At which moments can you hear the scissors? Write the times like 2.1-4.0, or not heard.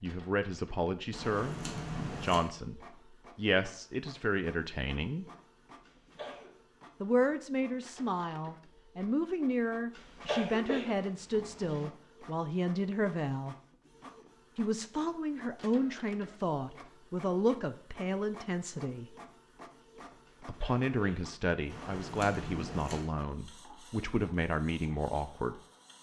1.1-2.5, 21.6-23.1.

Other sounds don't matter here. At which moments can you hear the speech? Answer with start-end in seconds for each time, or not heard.
0.0-5.2, 7.0-13.6, 14.6-19.1, 20.4-25.6.